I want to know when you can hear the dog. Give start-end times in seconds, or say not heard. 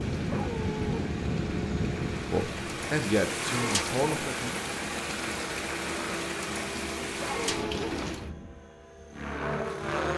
0.2-1.1, 7.2-7.8.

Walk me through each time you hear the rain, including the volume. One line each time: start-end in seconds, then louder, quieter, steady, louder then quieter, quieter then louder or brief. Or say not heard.
0.0-8.3 louder.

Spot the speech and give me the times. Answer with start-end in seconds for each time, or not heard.
2.3-4.5.